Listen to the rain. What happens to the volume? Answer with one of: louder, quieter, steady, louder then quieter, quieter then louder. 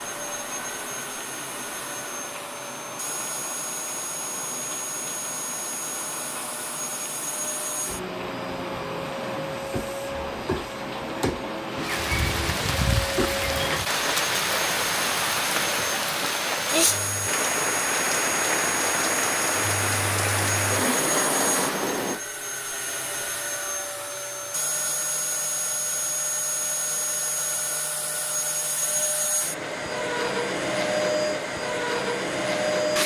louder.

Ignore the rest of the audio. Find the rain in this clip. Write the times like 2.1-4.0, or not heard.
0.0-22.2.